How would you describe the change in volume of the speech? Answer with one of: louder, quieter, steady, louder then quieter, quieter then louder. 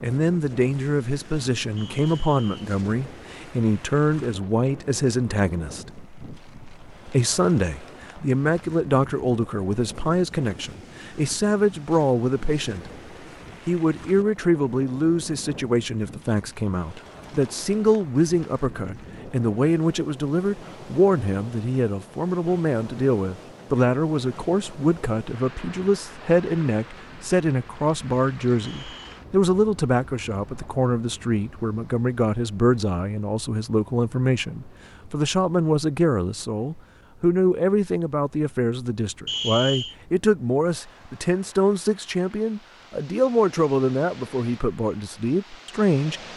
steady.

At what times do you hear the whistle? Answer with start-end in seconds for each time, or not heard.
1.8-2.6, 28.6-29.2, 39.2-40.0.